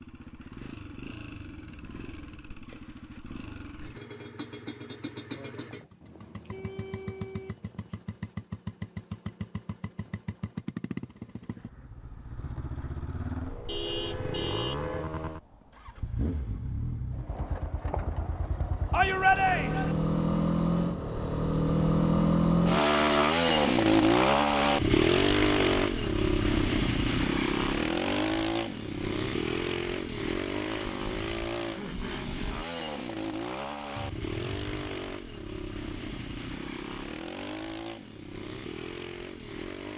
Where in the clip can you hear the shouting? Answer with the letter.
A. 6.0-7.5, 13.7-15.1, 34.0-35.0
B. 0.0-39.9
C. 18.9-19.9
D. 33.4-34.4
C.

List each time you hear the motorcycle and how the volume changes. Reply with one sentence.
The motorcycle can be heard from 0.0 to 39.9 s, getting louder then quieter.